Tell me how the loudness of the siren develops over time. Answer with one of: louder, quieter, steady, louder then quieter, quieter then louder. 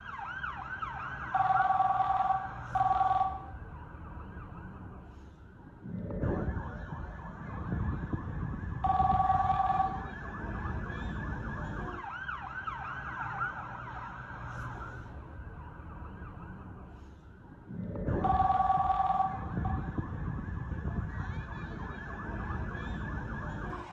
steady.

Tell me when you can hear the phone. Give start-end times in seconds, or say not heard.
1.3-3.2, 8.8-9.8, 18.2-19.8.